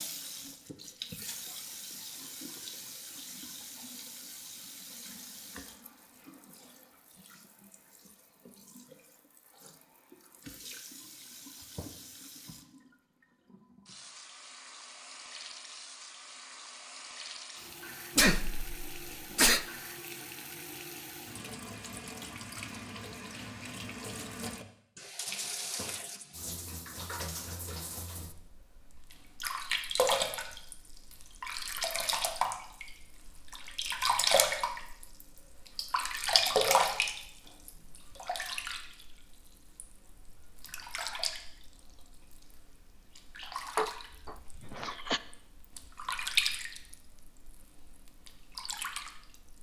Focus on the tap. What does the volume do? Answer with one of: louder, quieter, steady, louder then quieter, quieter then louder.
louder then quieter.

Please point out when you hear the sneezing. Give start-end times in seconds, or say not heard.
18.1-19.6, 43.8-45.2.